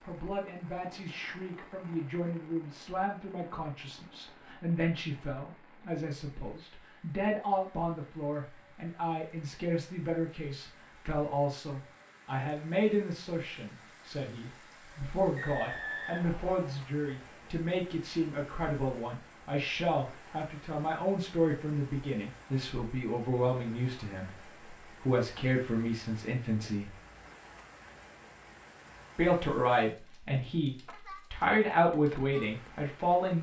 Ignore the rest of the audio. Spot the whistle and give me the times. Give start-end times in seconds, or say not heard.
15.3-16.6.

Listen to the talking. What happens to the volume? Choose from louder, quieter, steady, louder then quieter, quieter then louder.
louder.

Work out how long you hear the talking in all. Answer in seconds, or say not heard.
31 s.